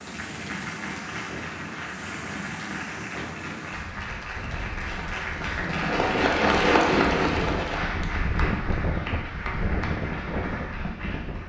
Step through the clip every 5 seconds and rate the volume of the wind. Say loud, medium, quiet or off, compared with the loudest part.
medium, loud, loud.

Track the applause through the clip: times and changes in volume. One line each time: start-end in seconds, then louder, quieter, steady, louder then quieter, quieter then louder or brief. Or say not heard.
0.0-11.4 louder then quieter.